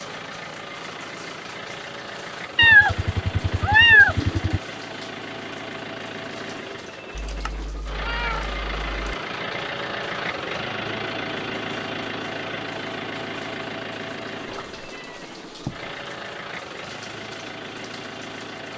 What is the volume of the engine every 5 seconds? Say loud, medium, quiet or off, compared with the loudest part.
medium, loud, loud, medium.